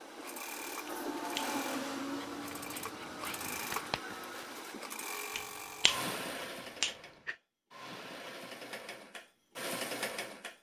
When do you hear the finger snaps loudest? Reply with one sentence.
The loudest moment of the finger snaps is at 7 seconds.